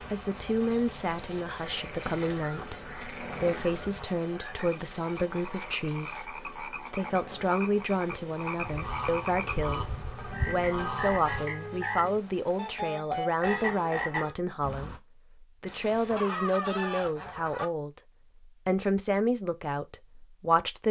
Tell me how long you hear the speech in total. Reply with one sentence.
You can hear the speech for 21 seconds altogether.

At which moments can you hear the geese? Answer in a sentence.
You can hear the geese from 2.0 to 4.0 s, from 8.6 to 11.5 s and from 15.7 to 17.6 s.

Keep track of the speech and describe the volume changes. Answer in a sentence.
The volume of the speech stays about the same.